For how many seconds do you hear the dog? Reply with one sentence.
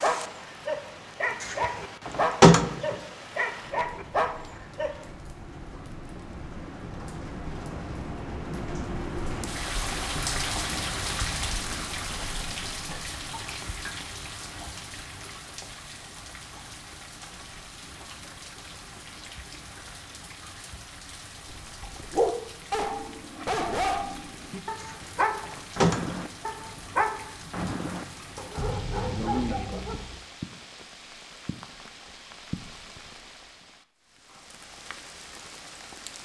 The dog can be heard for 14 seconds in total.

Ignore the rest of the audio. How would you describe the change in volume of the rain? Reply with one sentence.
The volume of the rain goes up, then down.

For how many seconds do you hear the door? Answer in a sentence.
The door can be heard for 3 seconds in total.